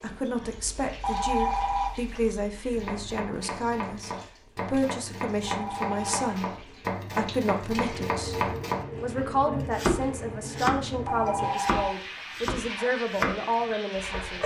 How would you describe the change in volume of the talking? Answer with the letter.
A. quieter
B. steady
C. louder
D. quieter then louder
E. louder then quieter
B.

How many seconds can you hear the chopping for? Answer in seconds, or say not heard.
12 s.